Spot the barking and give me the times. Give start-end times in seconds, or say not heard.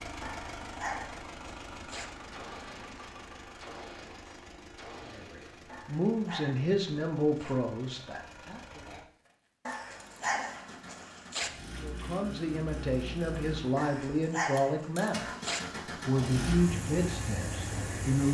0.2-2.0, 5.7-7.5, 9.7-11.5, 13.8-15.6.